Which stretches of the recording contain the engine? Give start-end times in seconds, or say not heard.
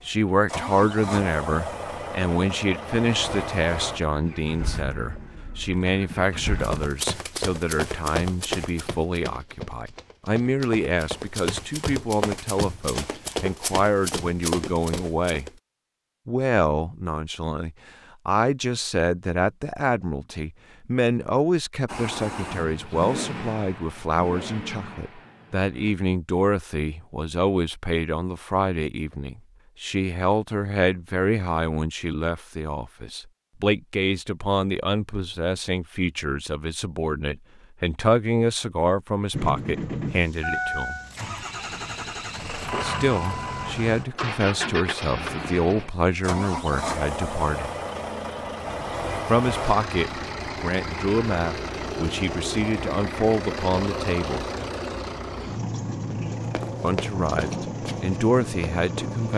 0.0-6.8, 21.9-25.9, 39.3-59.3.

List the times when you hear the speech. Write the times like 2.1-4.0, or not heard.
0.1-15.5, 16.2-41.0, 42.8-47.7, 49.2-54.5, 56.8-59.3.